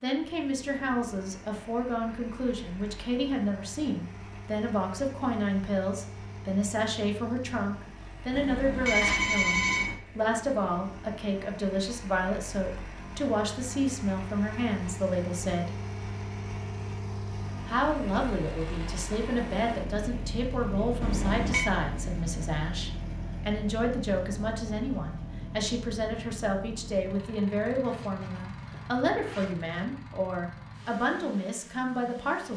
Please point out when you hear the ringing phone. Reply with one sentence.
You can hear the ringing phone from 8.3 to 9.9 s and from 21.0 to 21.7 s.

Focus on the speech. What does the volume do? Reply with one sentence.
The volume of the speech stays about the same.